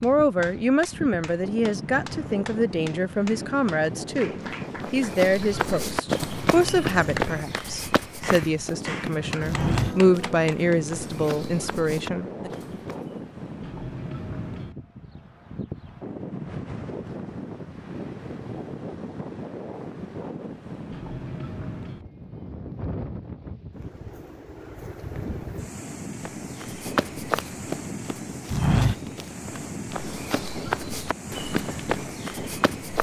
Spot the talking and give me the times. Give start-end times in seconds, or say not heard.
0.0-12.5.